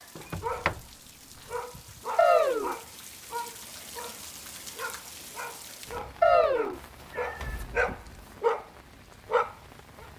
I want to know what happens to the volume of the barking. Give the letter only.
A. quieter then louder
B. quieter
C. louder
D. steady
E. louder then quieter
C.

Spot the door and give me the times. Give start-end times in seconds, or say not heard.
0.1-0.8, 7.3-8.4.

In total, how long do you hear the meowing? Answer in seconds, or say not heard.
2 s.